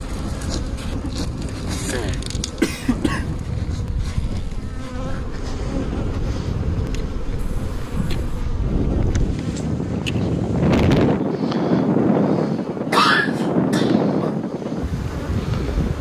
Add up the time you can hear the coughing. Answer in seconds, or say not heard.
4 s.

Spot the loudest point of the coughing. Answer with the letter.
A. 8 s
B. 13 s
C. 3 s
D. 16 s
B.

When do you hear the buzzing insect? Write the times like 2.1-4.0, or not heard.
0.0-15.9.